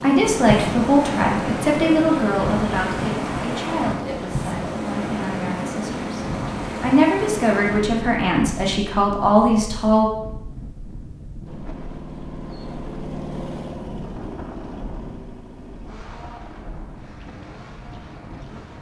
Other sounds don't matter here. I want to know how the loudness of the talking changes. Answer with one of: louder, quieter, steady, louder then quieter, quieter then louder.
quieter then louder.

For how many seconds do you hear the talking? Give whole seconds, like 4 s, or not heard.
10 s.